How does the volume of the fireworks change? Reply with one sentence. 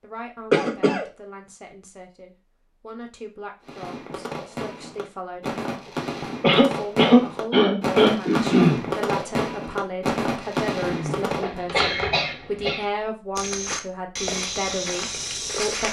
The volume of the fireworks goes up.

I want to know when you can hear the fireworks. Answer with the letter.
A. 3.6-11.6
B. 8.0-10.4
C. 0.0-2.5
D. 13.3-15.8
A.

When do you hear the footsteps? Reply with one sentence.
The footsteps can be heard from 13.3 to 15.8 s.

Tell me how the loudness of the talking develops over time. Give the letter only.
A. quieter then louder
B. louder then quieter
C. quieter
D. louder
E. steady
D.